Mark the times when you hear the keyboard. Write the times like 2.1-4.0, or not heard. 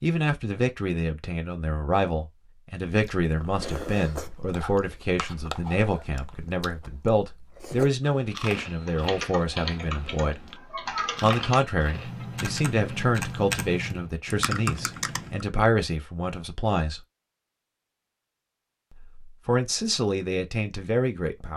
8.8-15.4.